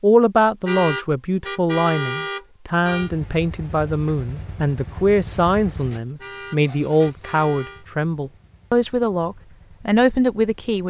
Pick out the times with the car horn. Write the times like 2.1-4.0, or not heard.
0.7-3.1, 6.2-7.8.